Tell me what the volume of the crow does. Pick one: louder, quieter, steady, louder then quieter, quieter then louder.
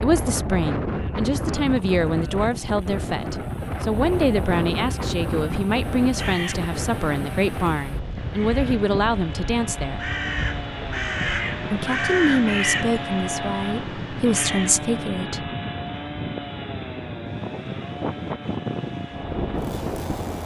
louder then quieter.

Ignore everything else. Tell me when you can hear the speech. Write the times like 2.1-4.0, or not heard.
0.0-10.1, 11.6-15.5.